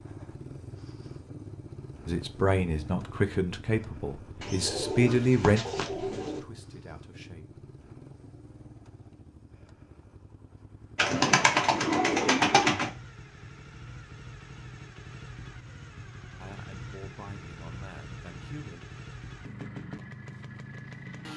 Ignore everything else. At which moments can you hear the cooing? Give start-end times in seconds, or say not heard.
4.4-6.4, 10.9-12.9.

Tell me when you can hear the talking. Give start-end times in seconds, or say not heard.
2.0-7.6, 16.4-18.8.